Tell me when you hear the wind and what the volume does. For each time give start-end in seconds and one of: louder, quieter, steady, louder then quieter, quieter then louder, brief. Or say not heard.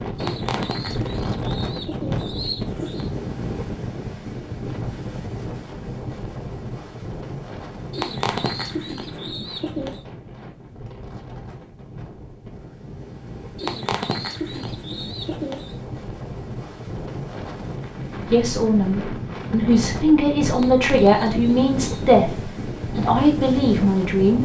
0.0-24.4 quieter then louder.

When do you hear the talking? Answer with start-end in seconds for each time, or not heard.
18.3-22.4, 22.9-24.4.